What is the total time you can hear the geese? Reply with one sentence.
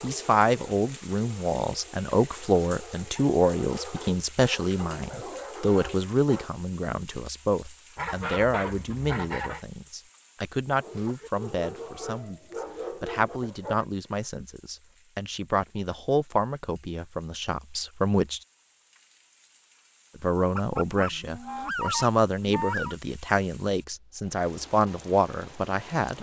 You can hear the geese for 4 seconds altogether.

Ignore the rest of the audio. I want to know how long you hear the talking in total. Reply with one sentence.
The talking can be heard for 24 seconds in total.